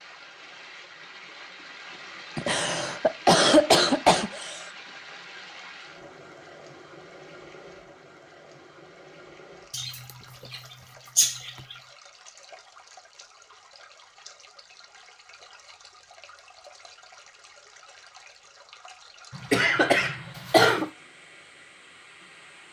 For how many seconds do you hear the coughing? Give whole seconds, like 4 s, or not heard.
6 s.